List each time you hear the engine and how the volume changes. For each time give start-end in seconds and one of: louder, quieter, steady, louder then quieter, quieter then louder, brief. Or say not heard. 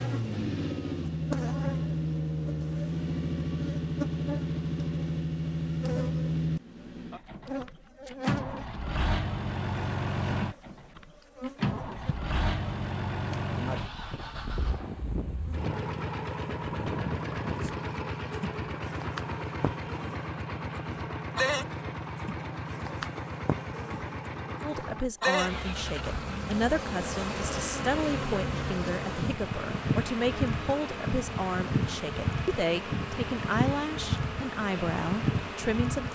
0.0-36.1 quieter.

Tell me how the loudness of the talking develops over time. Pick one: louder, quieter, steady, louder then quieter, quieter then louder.
steady.